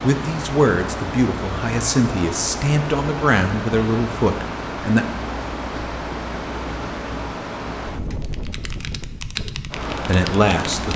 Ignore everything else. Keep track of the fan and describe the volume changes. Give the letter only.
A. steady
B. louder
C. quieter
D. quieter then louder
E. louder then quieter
A.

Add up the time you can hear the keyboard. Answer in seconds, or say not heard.
3 s.